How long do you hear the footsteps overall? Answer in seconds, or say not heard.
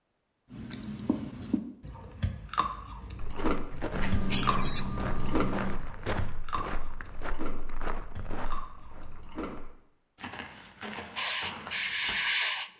9 s.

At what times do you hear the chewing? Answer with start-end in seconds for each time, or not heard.
0.5-9.6.